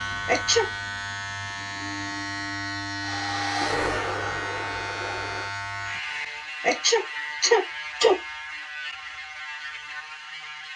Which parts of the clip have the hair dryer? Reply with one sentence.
The hair dryer can be heard from 3.0 to 5.5 s.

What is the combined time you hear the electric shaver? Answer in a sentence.
You can hear the electric shaver for 11 seconds altogether.